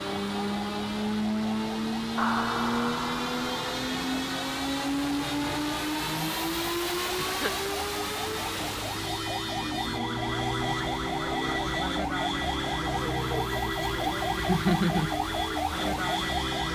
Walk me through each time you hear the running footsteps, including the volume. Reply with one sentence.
You can't hear the running footsteps here.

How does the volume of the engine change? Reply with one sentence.
The loudness of the engine goes down.